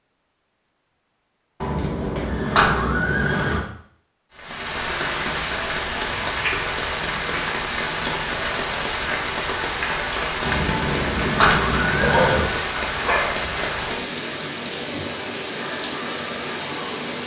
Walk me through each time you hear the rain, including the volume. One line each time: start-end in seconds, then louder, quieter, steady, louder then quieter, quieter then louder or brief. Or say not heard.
4.3-17.2 steady.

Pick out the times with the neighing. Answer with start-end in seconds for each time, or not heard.
1.6-3.6, 10.4-12.4.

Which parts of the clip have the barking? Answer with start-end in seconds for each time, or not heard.
12.0-13.4.